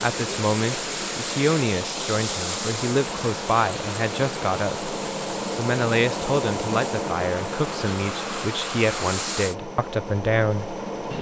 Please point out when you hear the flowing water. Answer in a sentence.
The flowing water can be heard from 0.0 to 9.6 s.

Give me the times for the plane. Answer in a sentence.
The plane can be heard from 0.0 to 11.1 s.